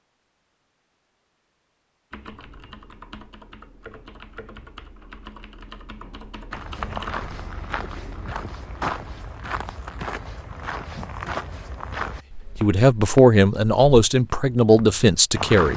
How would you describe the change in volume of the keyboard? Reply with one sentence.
The loudness of the keyboard goes up, then down.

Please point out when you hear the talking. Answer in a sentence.
The talking can be heard from 12.6 to 15.7 s.